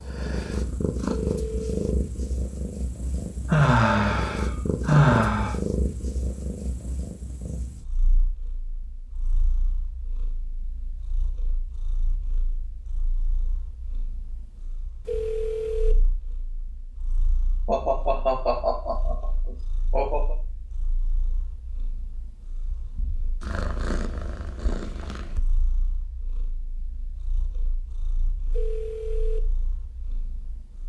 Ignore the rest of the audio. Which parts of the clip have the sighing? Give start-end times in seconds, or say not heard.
3.5-5.5, 17.6-20.4.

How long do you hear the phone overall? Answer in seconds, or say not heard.
3 s.